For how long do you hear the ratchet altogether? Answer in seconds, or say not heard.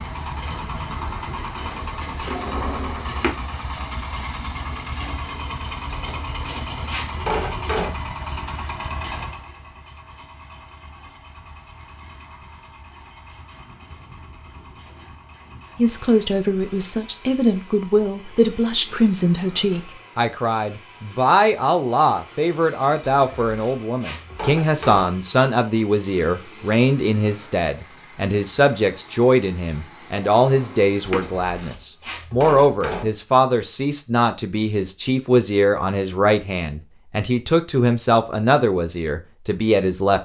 6 s.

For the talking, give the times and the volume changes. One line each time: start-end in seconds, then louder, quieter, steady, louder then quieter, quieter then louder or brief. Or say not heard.
15.8-40.1 steady.